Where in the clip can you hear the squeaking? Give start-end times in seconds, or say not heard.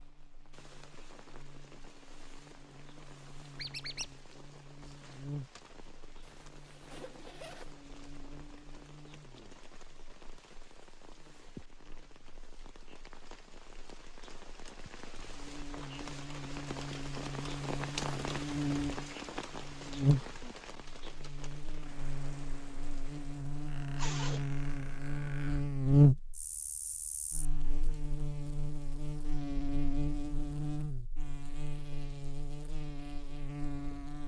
3.5-4.2, 23.6-25.6.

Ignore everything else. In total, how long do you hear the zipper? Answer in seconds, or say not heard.
2 s.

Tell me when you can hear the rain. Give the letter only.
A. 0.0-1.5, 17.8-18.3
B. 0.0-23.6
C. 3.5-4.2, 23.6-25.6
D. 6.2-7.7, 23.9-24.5
B.